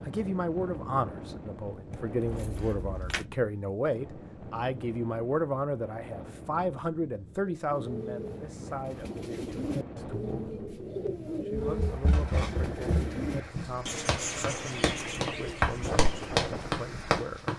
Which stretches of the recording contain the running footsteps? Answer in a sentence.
The running footsteps can be heard from 11.6 to 17.5 s.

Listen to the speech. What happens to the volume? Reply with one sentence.
The loudness of the speech goes down.